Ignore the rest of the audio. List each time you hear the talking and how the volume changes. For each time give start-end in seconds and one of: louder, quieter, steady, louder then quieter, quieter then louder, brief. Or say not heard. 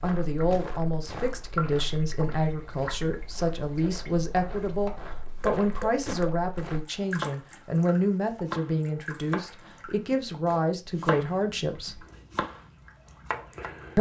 0.0-12.1 steady.